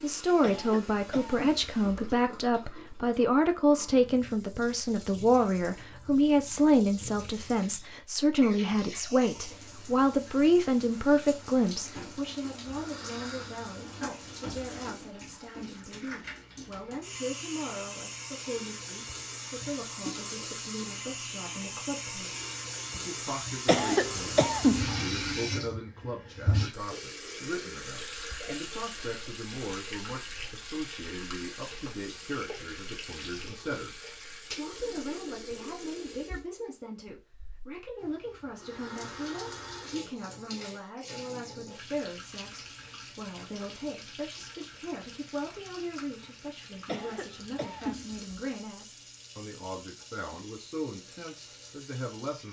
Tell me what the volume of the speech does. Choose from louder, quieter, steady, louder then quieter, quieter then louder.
quieter.